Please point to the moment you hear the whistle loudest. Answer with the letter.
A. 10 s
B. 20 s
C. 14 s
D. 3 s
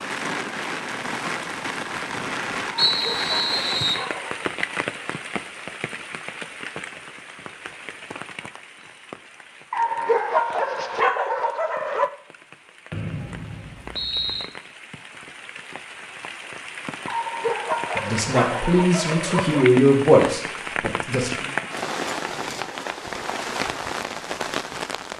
D.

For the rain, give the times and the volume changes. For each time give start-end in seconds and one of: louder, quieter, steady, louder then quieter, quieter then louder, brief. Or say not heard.
0.0-25.1 quieter then louder.